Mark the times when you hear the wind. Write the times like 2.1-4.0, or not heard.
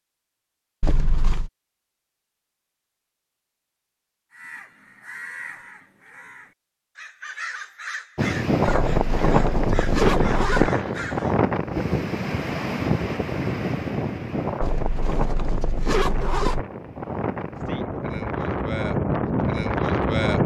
8.2-20.4.